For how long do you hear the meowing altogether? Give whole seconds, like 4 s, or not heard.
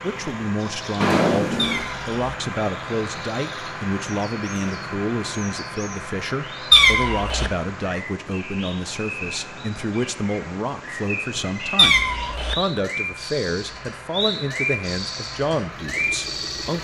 2 s.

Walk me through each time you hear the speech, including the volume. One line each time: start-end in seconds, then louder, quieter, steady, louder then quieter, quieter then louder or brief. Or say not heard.
0.0-16.7 steady.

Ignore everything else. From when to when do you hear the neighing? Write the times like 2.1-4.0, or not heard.
1.0-1.9.